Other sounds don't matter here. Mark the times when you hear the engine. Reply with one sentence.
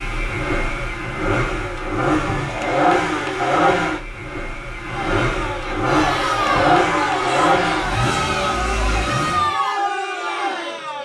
The engine can be heard from 0.0 to 9.5 s.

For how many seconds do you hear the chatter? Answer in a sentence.
The chatter can be heard for 6 seconds in total.